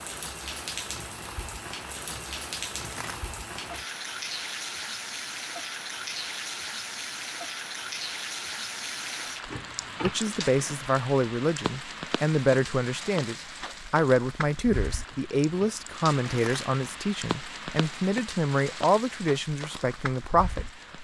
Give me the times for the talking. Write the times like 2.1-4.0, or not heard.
10.0-20.9.